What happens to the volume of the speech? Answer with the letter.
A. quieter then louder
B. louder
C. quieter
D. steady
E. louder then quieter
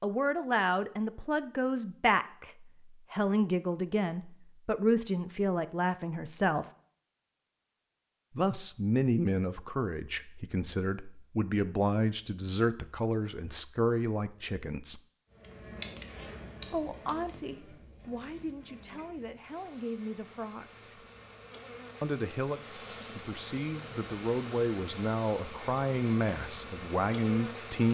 A.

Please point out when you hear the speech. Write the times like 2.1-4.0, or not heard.
0.0-6.7, 8.3-15.0, 16.7-21.0, 22.0-27.8.